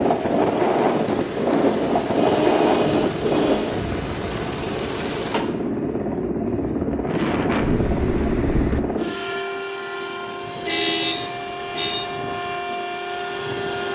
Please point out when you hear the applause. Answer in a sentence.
You can't hear the applause here.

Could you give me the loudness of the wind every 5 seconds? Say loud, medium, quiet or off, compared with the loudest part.
loud, medium, off.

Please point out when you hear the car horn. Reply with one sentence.
You can hear the car horn from 2.1 to 3.8 s and from 10.7 to 11.9 s.